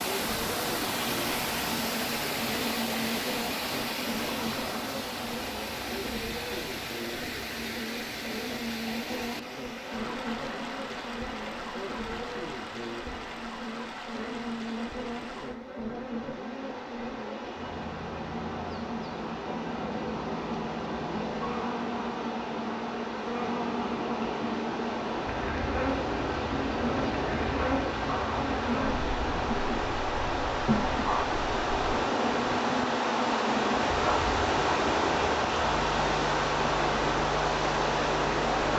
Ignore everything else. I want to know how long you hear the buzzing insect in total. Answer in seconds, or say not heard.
39 s.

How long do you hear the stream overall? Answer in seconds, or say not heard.
39 s.